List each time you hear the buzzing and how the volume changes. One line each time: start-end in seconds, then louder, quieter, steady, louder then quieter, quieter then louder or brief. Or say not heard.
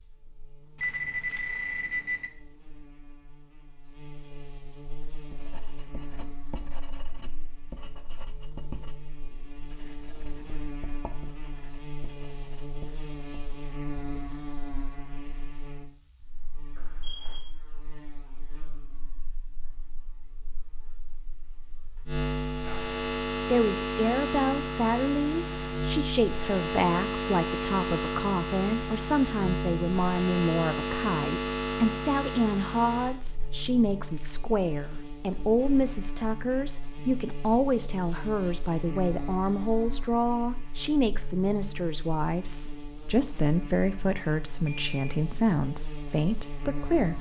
0.0-47.1 louder then quieter.